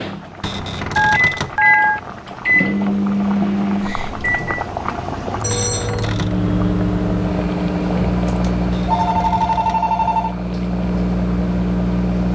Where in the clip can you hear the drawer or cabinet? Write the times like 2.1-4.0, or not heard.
0.4-1.6, 5.5-6.3, 8.7-9.8.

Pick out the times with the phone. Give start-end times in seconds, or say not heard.
0.9-2.0, 5.4-6.2, 8.2-10.3.